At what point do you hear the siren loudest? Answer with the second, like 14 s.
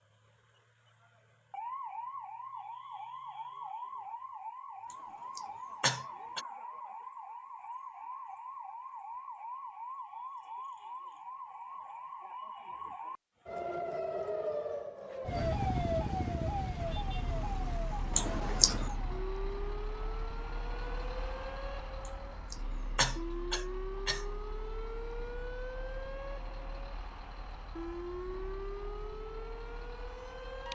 16 s.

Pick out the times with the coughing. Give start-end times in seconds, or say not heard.
4.9-6.5, 18.1-18.9, 22.1-24.2.